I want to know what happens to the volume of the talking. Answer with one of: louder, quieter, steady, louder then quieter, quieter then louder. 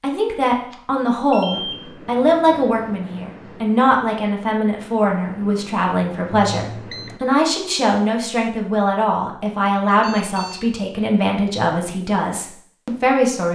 steady.